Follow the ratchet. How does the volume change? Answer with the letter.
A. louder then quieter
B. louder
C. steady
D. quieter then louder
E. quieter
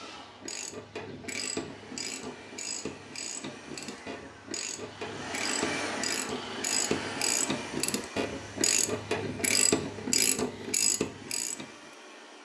B.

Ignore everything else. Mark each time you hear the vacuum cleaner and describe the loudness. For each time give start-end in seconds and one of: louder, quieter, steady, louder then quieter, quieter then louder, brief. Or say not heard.
0.0-12.3 louder then quieter.